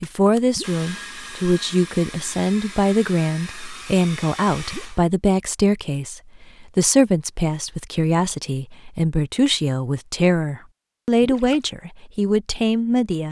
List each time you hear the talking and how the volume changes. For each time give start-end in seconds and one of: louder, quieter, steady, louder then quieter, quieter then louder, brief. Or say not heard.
0.0-13.2 steady.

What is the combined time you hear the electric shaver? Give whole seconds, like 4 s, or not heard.
not heard.